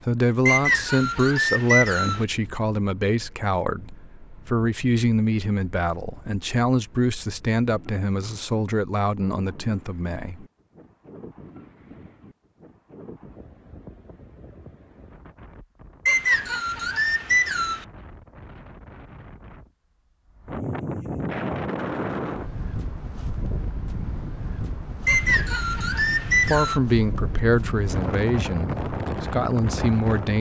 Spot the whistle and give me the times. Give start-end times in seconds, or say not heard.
0.5-2.2, 16.1-17.9, 25.1-26.8.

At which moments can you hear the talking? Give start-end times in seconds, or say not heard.
0.1-10.4, 26.4-30.3.